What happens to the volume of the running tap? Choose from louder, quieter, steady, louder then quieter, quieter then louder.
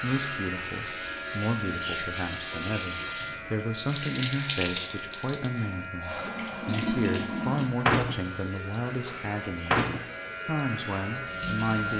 louder.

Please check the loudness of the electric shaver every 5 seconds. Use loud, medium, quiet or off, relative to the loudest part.
loud, medium, loud.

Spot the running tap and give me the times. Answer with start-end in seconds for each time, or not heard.
0.0-11.9.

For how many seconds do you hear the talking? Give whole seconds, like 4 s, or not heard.
12 s.